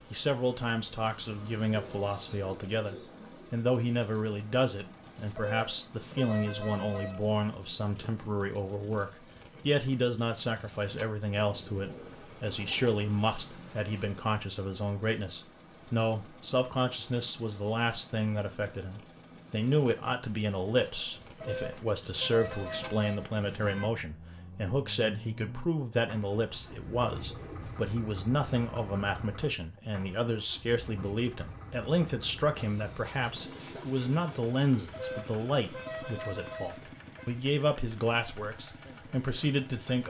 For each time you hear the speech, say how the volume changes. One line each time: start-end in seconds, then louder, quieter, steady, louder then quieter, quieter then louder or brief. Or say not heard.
0.1-40.0 steady.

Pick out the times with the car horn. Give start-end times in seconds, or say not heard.
5.3-7.3, 21.4-23.9, 34.9-37.3.